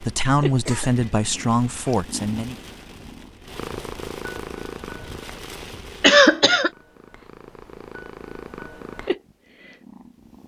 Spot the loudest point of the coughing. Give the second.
6 s.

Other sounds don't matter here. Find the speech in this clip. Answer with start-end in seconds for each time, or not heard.
0.0-2.5.